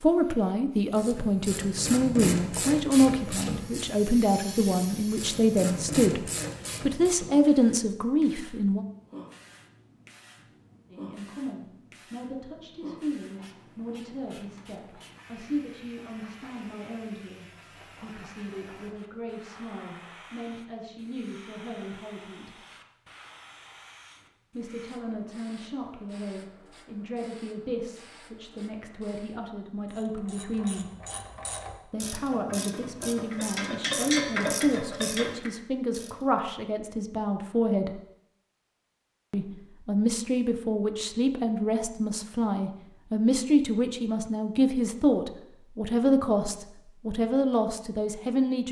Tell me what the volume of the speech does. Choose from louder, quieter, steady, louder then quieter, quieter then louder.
quieter then louder.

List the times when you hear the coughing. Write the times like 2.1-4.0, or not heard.
not heard.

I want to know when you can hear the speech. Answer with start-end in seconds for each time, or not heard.
0.0-8.8, 10.9-22.6, 24.5-30.9, 31.9-38.0, 39.3-48.6.